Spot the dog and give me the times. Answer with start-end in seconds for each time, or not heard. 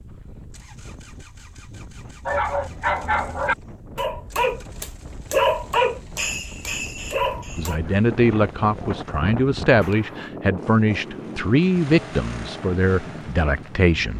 2.2-7.8.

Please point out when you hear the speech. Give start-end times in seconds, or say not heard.
7.5-14.1.